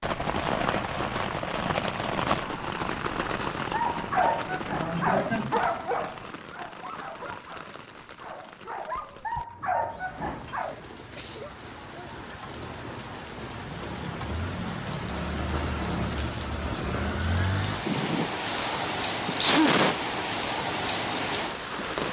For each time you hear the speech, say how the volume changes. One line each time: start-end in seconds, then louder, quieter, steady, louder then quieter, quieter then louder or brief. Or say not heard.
not heard.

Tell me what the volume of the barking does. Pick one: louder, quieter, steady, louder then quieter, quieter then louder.
quieter then louder.